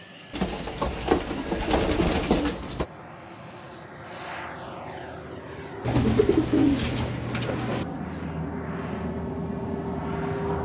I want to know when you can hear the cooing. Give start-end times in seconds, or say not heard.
0.3-2.9, 5.8-7.8.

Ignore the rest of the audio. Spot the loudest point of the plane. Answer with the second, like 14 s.
10 s.